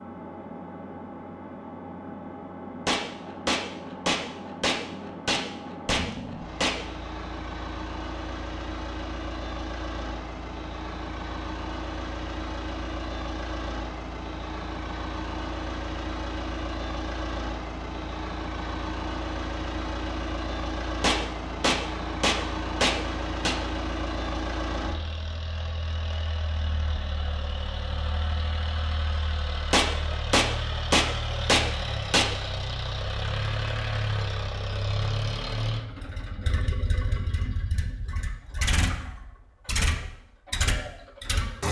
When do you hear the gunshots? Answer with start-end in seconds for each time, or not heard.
2.9-6.8, 21.0-23.6, 29.7-32.3.